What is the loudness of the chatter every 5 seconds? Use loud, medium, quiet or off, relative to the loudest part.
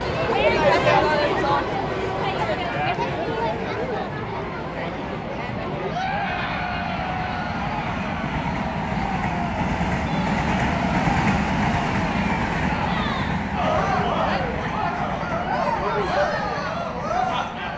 loud, medium, medium, loud.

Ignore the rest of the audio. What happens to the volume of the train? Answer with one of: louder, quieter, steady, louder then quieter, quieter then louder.
louder then quieter.